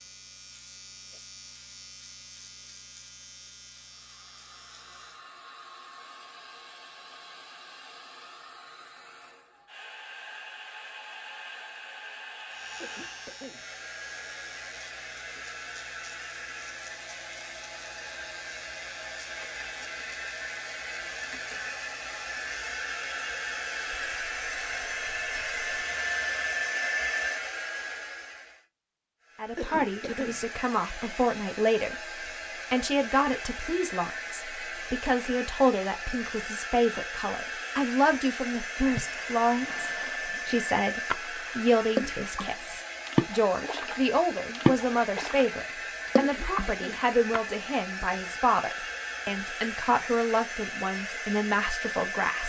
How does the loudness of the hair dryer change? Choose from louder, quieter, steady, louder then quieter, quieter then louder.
louder.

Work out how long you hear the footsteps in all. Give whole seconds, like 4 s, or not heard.
not heard.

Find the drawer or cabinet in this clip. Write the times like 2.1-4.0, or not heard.
not heard.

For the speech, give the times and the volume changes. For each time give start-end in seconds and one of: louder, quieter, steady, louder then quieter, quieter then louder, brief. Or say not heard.
29.4-52.4 steady.